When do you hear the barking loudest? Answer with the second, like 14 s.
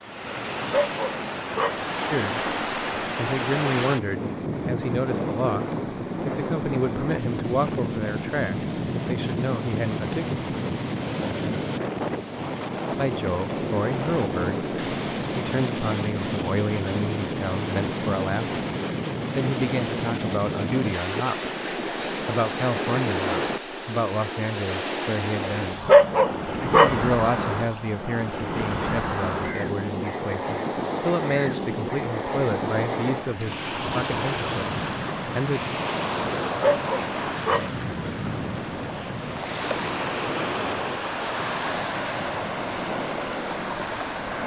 26 s.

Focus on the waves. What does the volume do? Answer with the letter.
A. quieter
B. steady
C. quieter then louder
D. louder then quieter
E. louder
B.